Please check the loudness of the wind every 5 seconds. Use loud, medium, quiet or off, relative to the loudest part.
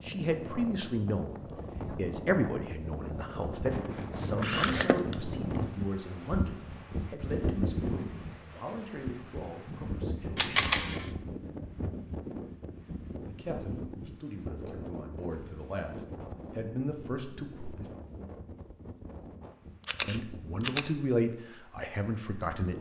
loud, loud, loud, medium, medium.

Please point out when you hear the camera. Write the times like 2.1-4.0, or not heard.
4.4-5.2, 10.3-11.1, 19.9-20.8.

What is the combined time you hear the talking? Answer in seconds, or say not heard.
18 s.